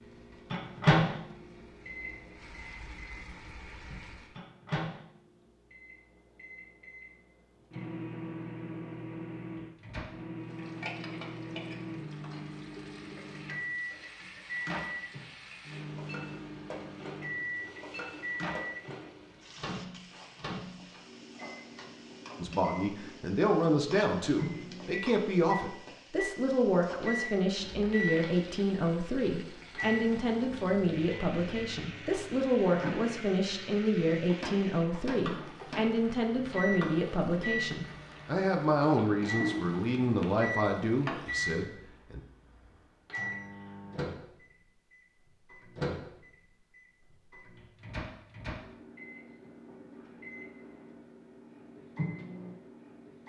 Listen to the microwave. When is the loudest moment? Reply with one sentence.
The volume of the microwave peaks at 1 second.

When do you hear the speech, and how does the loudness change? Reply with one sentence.
You can hear the speech from 22.4 to 42.2 s, at a steady volume.